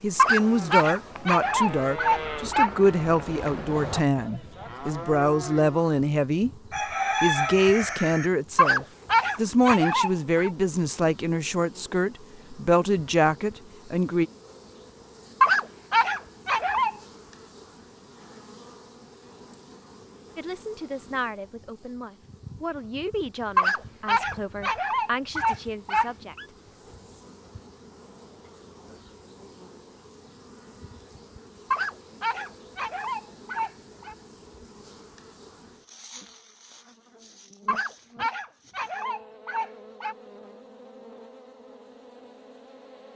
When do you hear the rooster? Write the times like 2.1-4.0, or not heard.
6.7-8.3.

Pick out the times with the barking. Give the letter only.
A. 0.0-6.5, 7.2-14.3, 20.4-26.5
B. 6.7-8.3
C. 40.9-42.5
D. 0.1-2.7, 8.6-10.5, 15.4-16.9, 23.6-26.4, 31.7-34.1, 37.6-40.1
D.